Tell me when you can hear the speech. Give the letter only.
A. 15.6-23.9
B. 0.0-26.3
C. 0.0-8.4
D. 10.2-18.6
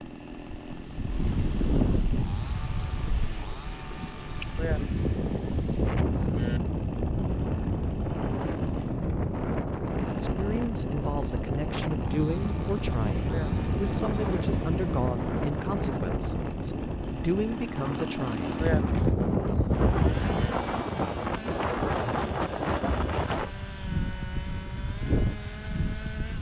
D.